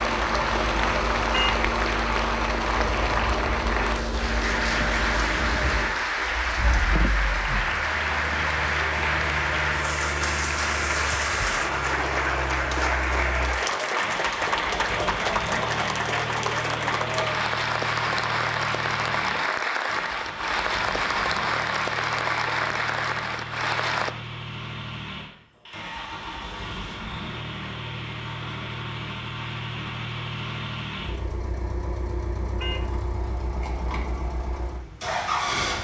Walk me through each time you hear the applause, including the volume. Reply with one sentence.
You can hear the applause from 0.0 to 24.1 s, at a steady volume.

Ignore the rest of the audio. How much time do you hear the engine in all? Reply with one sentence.
The engine can be heard for 36 seconds in total.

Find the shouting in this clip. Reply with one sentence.
The shouting can't be heard in this clip.